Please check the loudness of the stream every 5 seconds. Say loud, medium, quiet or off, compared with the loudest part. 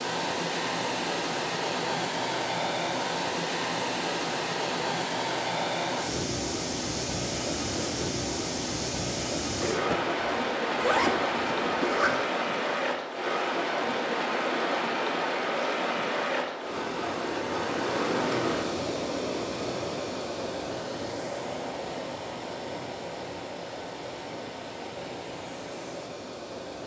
loud, loud, loud, loud, medium, medium.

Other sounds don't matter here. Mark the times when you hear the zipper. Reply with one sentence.
The zipper can be heard from 9.6 to 12.2 s.